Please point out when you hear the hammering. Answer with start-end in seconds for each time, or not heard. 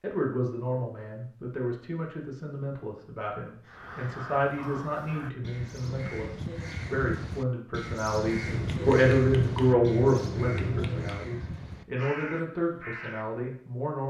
8.4-11.2.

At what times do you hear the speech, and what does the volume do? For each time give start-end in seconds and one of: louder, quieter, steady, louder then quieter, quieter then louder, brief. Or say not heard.
0.0-14.0 louder then quieter.